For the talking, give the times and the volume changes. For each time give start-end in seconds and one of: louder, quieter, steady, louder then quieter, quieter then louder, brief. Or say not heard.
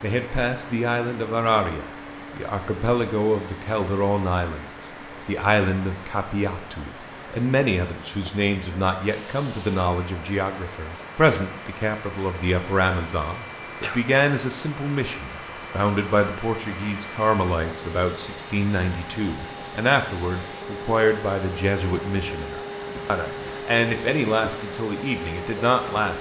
0.0-26.1 steady.